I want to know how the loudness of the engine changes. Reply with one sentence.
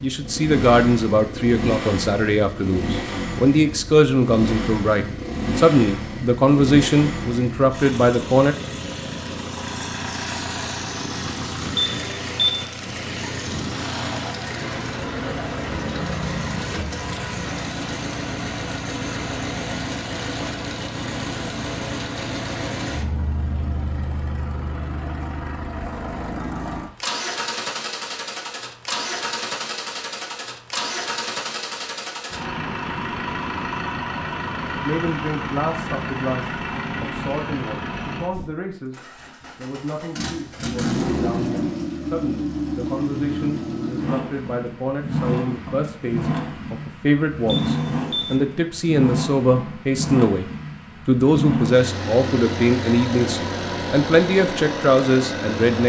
The loudness of the engine stays about the same.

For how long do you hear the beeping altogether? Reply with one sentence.
The beeping can be heard for 2 seconds in total.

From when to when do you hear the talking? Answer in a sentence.
You can hear the talking from 0.0 to 8.6 s, from 34.9 to 50.5 s and from 51.0 to 55.8 s.